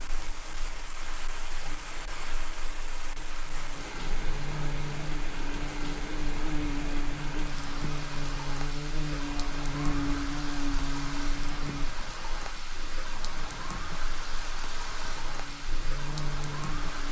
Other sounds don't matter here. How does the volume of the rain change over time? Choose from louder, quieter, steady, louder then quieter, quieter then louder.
steady.